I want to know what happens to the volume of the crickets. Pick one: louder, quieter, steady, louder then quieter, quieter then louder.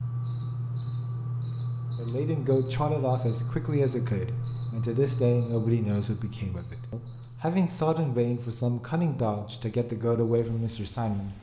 quieter.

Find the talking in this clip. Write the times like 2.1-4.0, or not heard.
1.9-11.3.